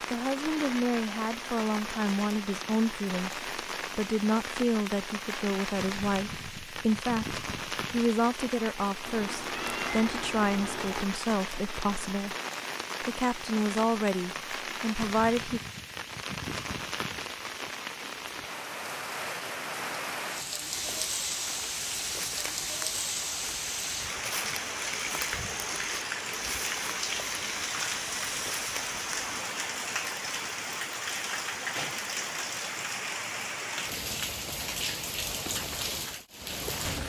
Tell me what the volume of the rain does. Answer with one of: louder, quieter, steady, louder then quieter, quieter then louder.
steady.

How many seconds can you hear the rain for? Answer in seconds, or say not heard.
37 s.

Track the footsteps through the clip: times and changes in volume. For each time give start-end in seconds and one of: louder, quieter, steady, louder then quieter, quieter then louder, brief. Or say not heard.
20.7-29.4 steady.